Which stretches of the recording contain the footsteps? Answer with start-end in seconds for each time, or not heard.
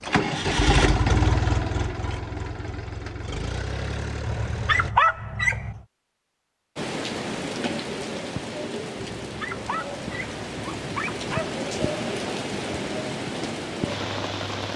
not heard.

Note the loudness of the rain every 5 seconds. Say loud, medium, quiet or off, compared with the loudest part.
off, loud, loud.